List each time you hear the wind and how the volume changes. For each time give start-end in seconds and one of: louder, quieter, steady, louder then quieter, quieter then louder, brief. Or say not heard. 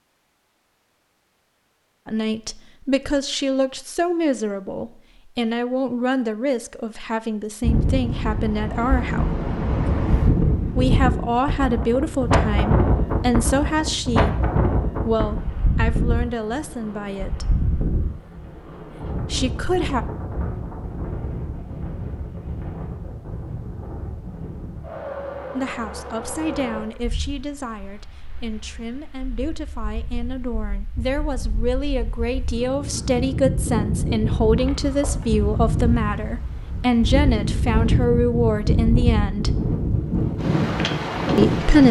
7.6-41.8 quieter then louder.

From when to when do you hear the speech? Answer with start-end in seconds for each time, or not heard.
2.0-9.3, 10.8-17.6, 19.3-20.1, 25.6-39.5, 41.4-41.8.